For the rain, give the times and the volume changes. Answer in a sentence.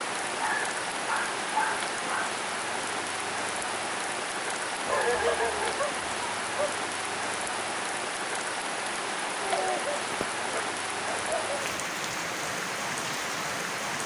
You can hear the rain from 0.0 to 14.0 s, at a steady volume.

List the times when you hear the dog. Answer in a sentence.
The dog can be heard from 0.3 to 2.3 s, from 4.8 to 6.8 s and from 9.4 to 11.6 s.